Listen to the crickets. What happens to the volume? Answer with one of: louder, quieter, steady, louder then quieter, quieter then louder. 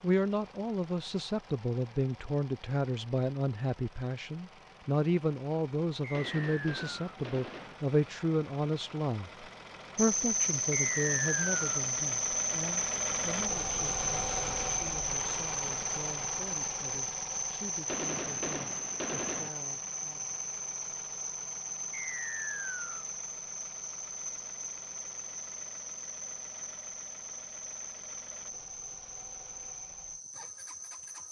quieter.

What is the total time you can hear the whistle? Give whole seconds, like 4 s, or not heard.
3 s.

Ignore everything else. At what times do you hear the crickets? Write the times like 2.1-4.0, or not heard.
9.9-31.2.